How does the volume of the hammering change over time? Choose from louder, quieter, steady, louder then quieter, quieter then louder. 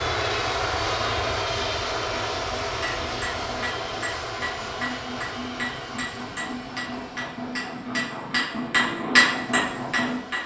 louder.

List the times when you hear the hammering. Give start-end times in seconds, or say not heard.
2.6-10.4.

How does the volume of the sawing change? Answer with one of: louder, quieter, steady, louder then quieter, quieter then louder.
louder.